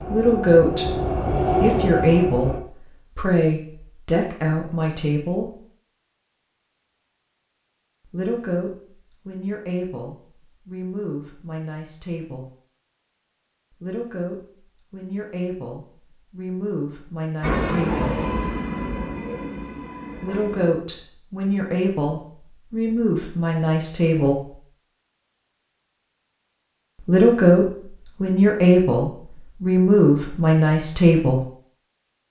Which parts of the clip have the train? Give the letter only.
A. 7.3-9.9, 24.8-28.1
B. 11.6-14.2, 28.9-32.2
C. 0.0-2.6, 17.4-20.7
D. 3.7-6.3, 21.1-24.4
C.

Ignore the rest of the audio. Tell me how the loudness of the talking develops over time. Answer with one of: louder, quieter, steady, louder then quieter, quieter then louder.
quieter then louder.